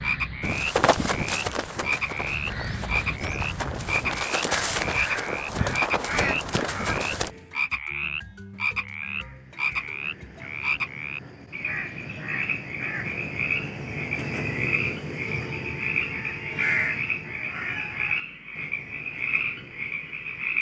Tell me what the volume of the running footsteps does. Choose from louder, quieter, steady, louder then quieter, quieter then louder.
quieter then louder.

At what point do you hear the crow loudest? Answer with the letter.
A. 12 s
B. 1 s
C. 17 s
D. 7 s
C.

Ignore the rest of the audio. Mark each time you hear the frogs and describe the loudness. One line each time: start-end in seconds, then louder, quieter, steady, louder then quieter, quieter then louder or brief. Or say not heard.
0.0-20.5 steady.